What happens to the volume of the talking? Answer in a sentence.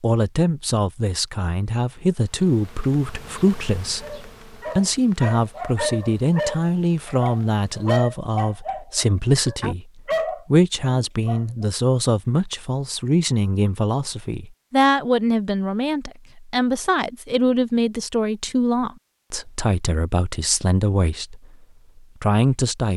The volume of the talking stays about the same.